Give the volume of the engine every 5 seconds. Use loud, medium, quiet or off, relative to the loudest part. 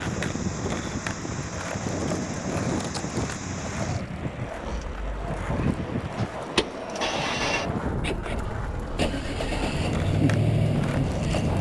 quiet, medium, loud.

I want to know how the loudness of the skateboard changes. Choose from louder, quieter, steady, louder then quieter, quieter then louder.
steady.